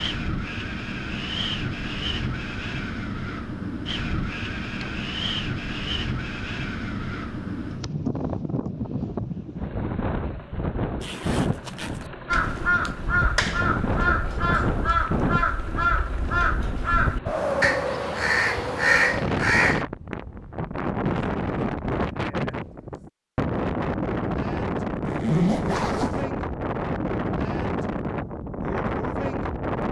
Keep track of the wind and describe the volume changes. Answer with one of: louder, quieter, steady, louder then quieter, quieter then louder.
steady.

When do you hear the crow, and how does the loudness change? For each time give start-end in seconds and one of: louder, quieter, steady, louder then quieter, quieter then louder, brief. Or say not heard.
12.2-19.9 steady.